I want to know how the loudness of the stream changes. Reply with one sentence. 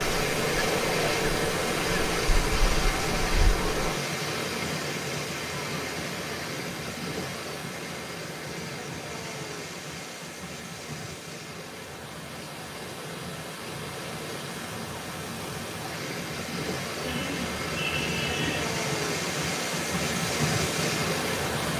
The loudness of the stream goes down, then up.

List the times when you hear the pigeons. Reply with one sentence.
You can hear the pigeons from 17.0 to 18.8 s.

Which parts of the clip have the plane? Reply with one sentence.
You can hear the plane from 0.0 to 4.0 s.